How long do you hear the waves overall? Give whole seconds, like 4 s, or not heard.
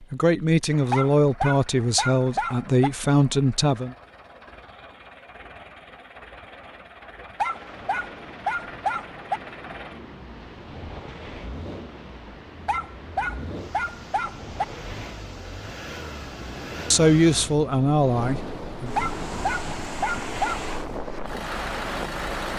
15 s.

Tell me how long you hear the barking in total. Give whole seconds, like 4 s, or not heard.
8 s.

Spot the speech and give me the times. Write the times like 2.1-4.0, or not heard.
0.0-4.0, 16.9-18.9.